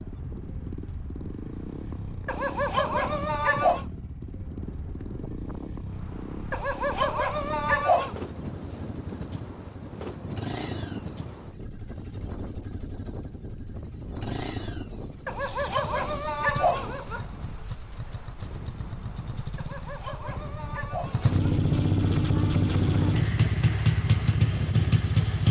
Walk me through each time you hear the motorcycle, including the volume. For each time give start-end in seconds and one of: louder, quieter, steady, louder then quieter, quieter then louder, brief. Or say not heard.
0.0-25.4 louder.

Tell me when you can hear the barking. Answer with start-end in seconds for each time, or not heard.
2.2-3.9, 6.5-8.2, 15.2-17.2, 19.6-21.4.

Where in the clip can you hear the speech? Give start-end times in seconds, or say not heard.
not heard.